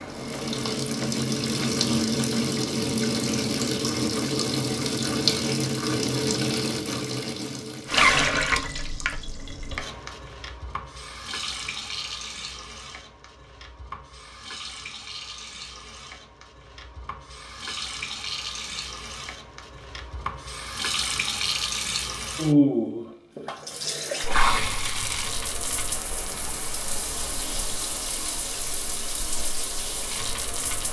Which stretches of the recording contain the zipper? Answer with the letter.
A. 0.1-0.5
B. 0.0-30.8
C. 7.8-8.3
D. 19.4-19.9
C.